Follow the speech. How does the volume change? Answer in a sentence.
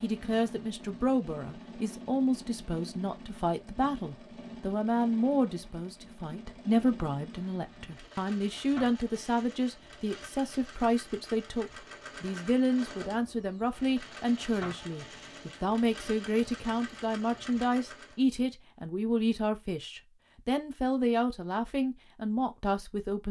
The volume of the speech stays about the same.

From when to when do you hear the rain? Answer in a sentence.
You can't hear the rain here.